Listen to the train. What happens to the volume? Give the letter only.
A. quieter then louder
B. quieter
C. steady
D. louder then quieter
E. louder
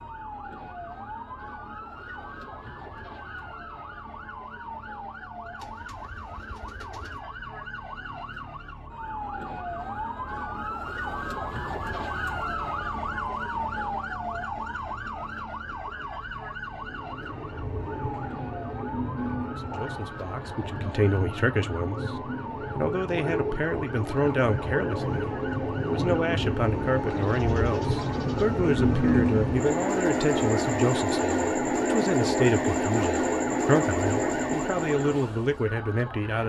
E.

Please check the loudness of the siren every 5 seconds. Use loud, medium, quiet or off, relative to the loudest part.
medium, medium, loud, medium, medium, medium, medium, medium.